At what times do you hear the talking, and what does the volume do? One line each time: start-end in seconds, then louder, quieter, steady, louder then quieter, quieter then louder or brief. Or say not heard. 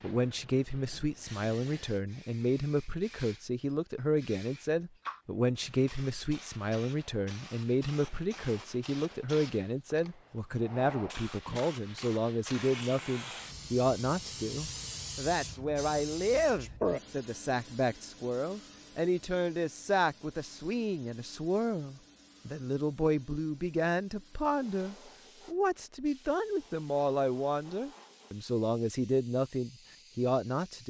0.0-30.8 steady.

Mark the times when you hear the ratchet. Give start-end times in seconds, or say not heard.
not heard.